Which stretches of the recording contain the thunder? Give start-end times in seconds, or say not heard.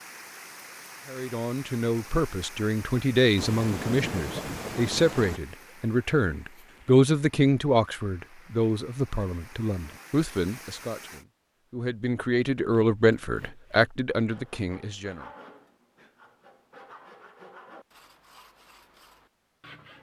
3.4-5.4.